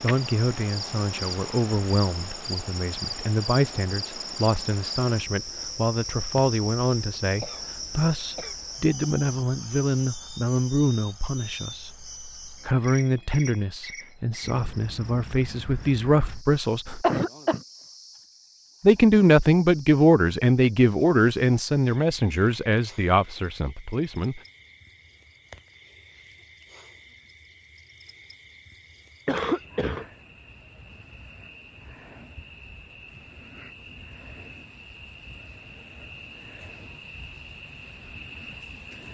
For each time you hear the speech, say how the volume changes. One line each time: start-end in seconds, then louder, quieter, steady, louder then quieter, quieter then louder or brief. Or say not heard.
0.0-17.1 steady
18.8-24.4 quieter.